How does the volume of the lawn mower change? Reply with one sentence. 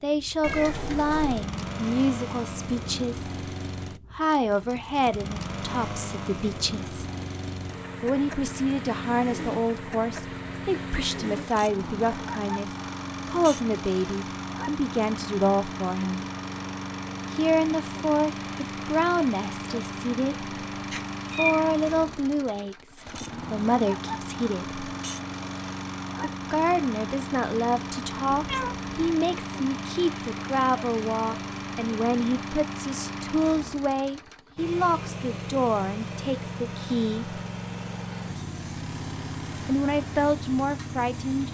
The volume of the lawn mower stays about the same.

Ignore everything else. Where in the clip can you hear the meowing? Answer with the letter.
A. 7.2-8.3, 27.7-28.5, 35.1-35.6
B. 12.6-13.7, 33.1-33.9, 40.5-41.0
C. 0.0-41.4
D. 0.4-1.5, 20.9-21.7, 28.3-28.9
D.